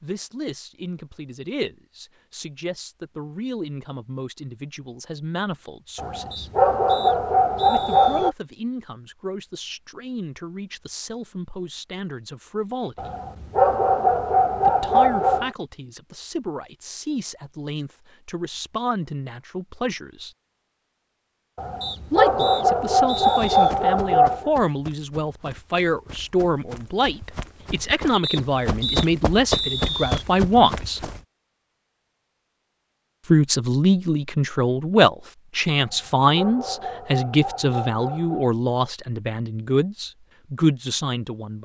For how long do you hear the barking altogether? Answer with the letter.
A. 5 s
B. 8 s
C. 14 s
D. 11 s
D.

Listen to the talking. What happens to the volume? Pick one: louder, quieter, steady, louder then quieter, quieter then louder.
louder.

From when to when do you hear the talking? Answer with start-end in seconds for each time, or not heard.
0.0-6.5, 7.7-13.1, 14.7-20.3, 22.1-31.1, 33.3-41.6.